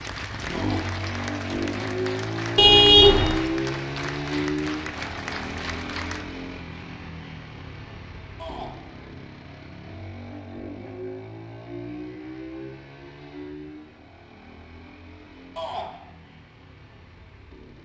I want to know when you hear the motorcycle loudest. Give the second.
3 s.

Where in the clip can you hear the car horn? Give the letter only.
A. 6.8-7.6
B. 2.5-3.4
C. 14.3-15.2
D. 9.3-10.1
B.